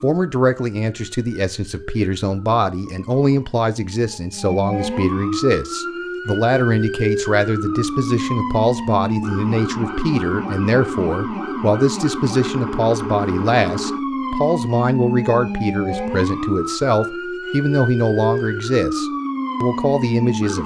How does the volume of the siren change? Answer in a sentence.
The loudness of the siren goes up.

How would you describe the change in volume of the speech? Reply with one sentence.
The loudness of the speech stays about the same.